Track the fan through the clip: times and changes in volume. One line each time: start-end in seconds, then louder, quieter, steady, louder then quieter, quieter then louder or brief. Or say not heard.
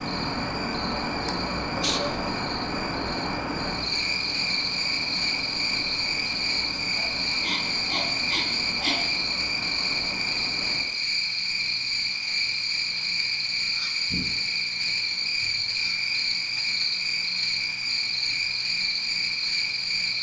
0.0-10.8 quieter.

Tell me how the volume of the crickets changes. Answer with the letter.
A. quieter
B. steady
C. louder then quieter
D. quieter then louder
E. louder
E.